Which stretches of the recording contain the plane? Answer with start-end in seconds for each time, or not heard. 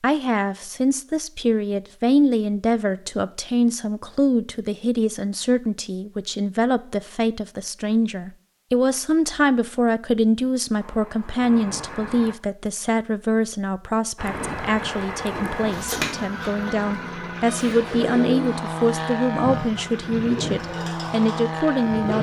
10.8-12.3, 14.2-22.1.